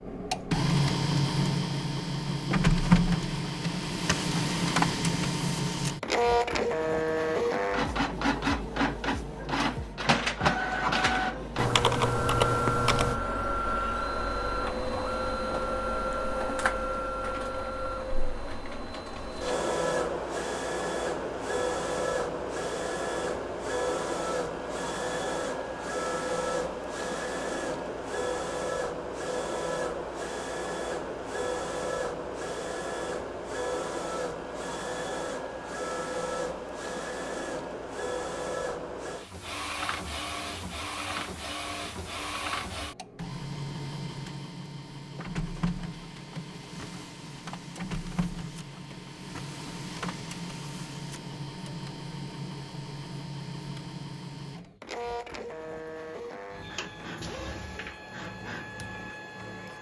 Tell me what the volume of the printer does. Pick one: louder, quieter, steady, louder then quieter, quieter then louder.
quieter.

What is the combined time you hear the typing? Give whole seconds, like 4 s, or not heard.
2 s.